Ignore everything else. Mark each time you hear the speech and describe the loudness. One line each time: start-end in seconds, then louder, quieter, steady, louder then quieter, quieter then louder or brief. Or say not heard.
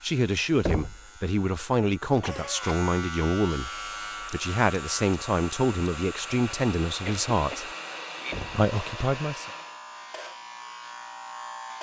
0.0-7.7 steady
8.5-9.4 brief.